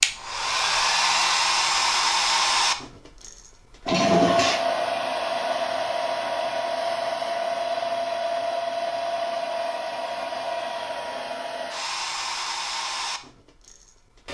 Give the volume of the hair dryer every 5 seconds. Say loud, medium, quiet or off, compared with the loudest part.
loud, loud, medium.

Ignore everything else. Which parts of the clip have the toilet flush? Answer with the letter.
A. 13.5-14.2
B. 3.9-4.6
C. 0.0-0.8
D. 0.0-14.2
B.